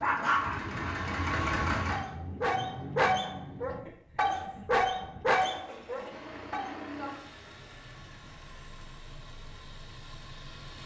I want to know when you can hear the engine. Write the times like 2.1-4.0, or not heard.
0.0-10.8.